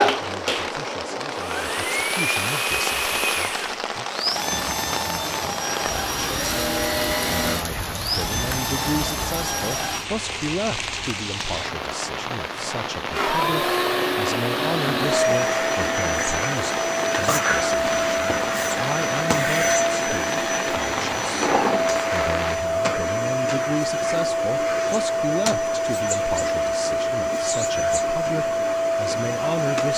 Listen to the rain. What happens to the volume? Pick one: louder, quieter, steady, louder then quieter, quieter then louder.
steady.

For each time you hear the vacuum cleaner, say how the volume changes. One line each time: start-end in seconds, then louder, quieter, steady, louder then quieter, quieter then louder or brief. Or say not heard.
0.0-10.1 steady
13.1-29.9 steady.